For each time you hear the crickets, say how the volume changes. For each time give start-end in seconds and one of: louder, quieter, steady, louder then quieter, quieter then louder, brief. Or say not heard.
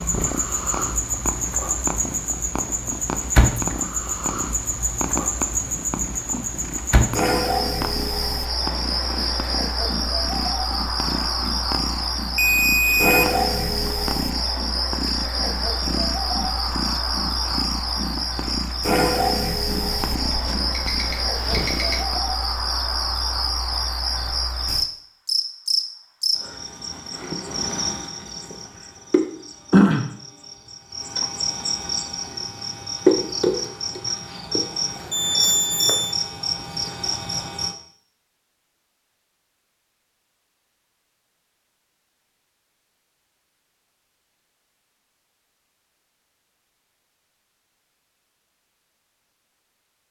0.0-37.8 steady.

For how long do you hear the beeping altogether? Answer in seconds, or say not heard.
4 s.